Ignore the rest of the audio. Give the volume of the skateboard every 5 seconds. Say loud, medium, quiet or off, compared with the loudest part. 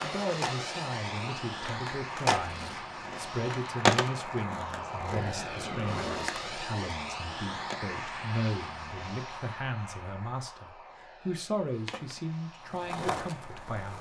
loud, medium, medium.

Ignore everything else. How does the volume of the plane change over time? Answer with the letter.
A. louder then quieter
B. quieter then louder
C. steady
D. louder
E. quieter
E.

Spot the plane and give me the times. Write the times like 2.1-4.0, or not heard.
0.0-13.8.